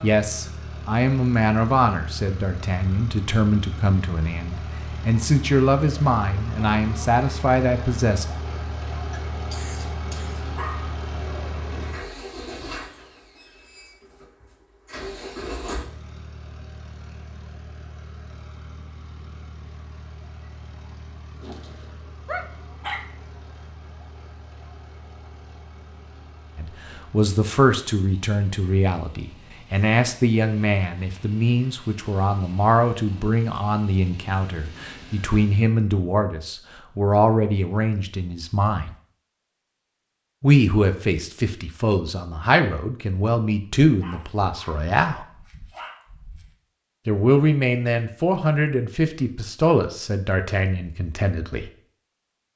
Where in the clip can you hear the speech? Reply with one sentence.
The speech can be heard from 0.0 to 8.2 s, from 26.6 to 38.9 s, from 40.4 to 45.2 s and from 47.0 to 51.7 s.